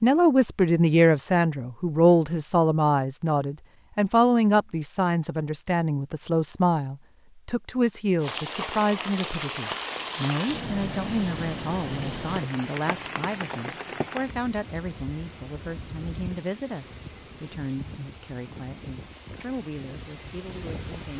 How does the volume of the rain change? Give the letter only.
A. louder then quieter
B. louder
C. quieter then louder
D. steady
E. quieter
E.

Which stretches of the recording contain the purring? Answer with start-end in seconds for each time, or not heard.
not heard.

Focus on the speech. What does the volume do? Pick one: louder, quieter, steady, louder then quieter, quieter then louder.
quieter.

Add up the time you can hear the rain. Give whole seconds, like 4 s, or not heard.
13 s.